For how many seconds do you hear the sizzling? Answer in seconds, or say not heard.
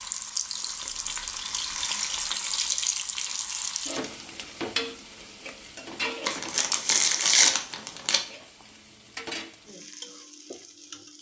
11 s.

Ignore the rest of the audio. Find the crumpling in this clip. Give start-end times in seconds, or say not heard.
0.8-2.8, 6.2-8.2.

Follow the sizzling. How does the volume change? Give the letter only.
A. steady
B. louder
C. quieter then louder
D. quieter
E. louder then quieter
C.